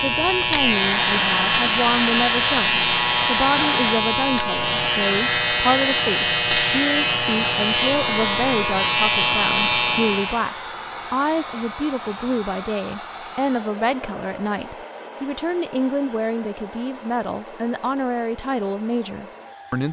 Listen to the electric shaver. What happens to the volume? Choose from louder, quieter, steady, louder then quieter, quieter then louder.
steady.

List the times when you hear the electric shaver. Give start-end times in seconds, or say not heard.
0.0-10.5.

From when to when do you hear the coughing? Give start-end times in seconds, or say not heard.
not heard.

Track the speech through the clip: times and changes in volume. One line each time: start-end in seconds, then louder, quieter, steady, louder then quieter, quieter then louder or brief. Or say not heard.
0.0-19.8 steady.